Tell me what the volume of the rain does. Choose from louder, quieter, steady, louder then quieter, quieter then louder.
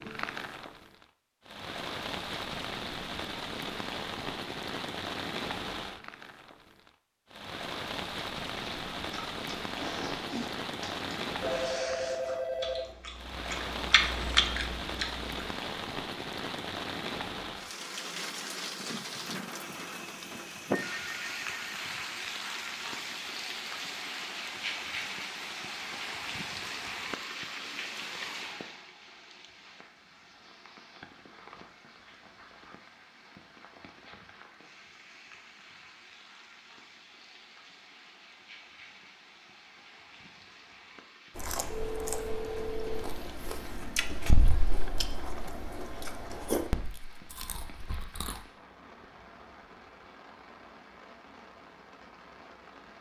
quieter.